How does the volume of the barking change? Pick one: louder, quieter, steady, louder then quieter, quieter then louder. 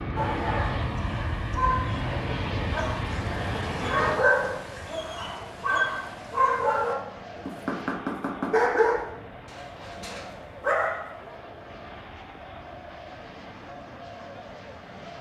louder.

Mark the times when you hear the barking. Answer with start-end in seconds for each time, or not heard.
0.1-11.0.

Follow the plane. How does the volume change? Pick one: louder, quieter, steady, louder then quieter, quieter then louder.
quieter.